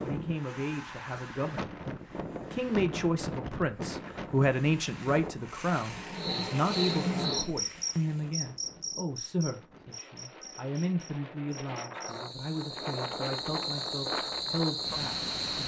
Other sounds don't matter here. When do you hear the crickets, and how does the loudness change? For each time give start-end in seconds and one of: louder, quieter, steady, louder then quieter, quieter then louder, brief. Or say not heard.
5.8-15.6 quieter then louder.